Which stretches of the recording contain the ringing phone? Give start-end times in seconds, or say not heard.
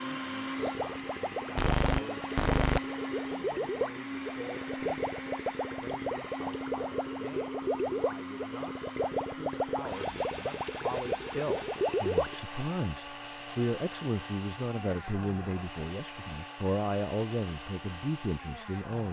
1.6-3.0.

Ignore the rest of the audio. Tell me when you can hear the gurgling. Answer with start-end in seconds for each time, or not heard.
0.6-12.3.